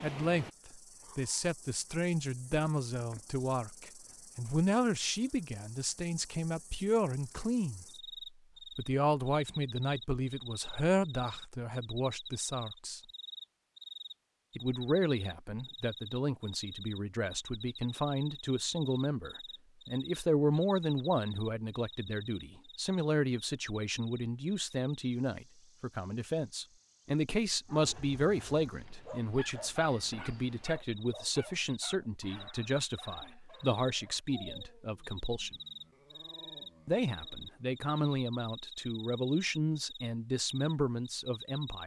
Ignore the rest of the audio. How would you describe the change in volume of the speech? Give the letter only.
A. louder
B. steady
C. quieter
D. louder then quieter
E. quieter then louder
B.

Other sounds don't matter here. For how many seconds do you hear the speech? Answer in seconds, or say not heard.
38 s.